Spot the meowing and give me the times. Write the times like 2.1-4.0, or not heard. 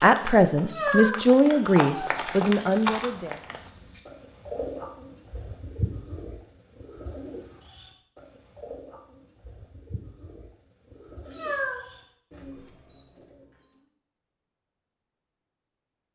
0.6-2.2, 11.2-11.8.